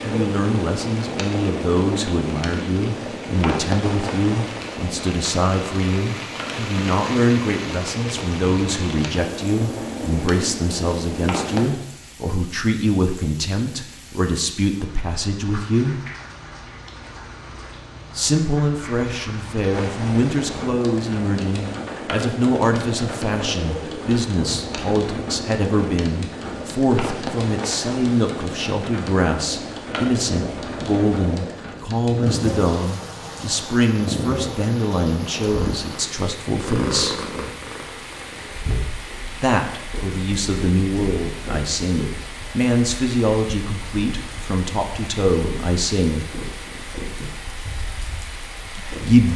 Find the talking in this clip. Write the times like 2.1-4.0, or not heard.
0.0-16.0, 18.1-37.2, 39.4-46.2, 48.8-49.3.